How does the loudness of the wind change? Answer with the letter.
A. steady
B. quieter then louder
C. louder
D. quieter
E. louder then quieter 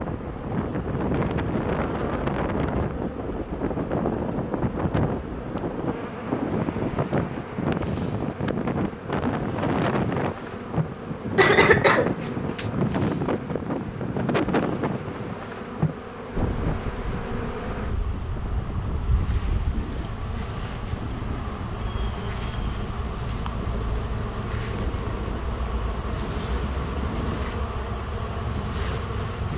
D.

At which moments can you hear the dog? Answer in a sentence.
The dog can't be heard in this clip.